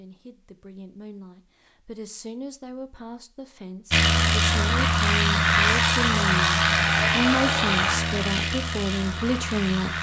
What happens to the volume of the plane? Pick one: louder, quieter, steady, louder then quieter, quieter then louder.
quieter.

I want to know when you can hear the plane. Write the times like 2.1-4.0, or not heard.
3.9-9.9.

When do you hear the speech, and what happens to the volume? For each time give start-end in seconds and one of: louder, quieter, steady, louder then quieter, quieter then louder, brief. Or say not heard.
0.0-9.9 louder.